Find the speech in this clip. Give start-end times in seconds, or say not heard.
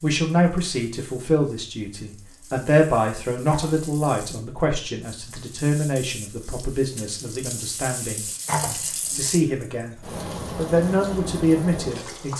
0.0-9.9, 10.6-12.3.